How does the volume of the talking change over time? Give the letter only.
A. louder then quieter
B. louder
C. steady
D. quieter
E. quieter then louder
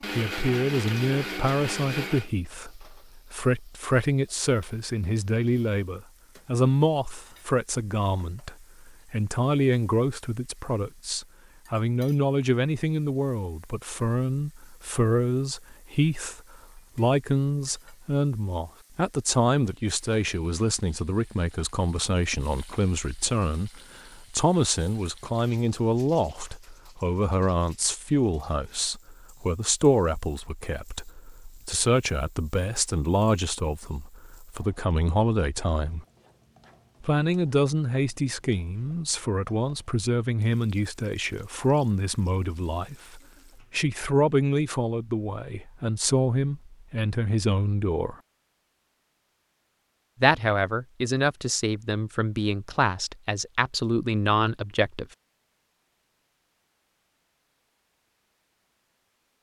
C.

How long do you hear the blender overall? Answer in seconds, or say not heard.
2 s.